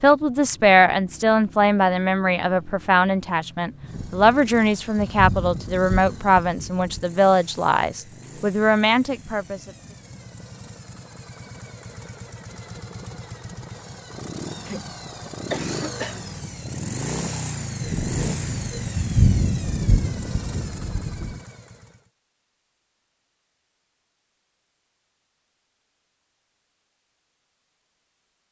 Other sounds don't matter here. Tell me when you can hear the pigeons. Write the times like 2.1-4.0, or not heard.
not heard.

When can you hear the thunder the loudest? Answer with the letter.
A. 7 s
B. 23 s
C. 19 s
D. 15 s
C.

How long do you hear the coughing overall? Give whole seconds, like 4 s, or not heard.
2 s.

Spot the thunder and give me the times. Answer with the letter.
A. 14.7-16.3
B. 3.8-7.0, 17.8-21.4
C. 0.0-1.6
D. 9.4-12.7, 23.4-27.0
B.